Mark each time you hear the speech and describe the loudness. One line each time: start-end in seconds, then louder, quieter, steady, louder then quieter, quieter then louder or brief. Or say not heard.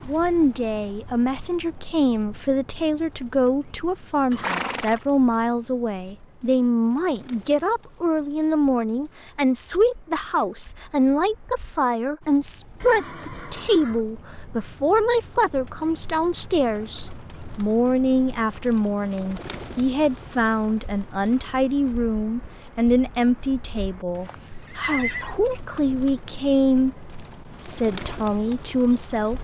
0.1-29.4 steady.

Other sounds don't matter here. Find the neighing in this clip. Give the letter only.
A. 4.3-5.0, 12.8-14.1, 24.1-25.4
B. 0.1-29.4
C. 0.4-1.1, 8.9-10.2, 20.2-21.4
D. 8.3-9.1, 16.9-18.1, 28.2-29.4
A.